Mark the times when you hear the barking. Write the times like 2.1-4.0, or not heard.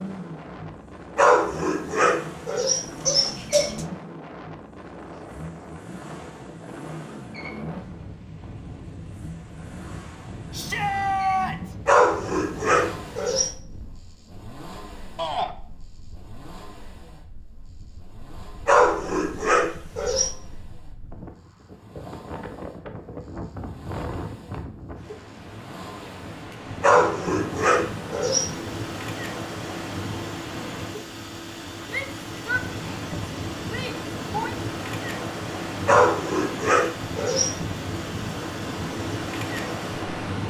1.1-3.9, 11.8-13.6, 18.6-20.4, 26.8-28.5, 35.9-37.6.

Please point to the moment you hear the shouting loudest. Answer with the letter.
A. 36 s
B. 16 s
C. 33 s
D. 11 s
D.